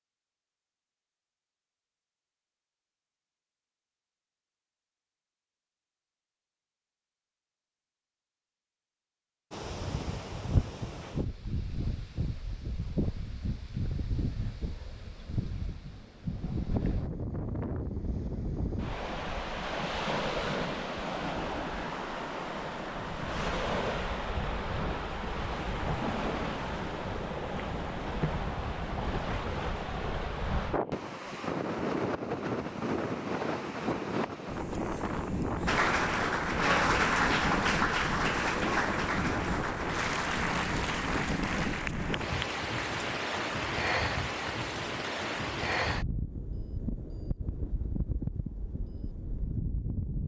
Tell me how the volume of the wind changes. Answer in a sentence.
The loudness of the wind stays about the same.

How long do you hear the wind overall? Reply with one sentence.
You can hear the wind for 41 seconds altogether.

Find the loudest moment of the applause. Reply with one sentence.
The volume of the applause peaks at 37 seconds.